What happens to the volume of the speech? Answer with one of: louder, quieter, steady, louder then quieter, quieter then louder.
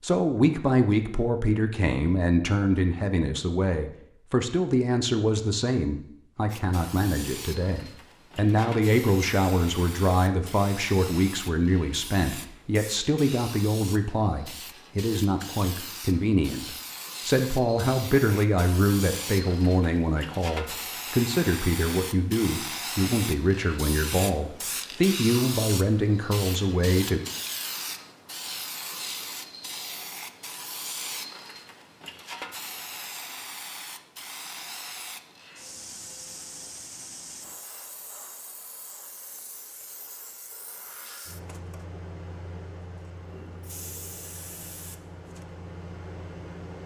steady.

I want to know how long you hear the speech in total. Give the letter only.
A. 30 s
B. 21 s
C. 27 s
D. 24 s
C.